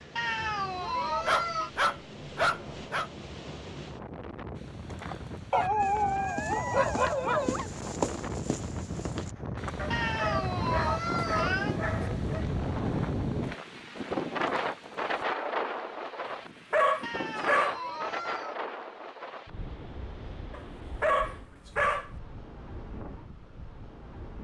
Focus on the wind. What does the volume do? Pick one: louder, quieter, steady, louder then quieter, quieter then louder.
louder then quieter.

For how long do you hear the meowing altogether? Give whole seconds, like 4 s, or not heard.
5 s.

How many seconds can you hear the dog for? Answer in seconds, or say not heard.
10 s.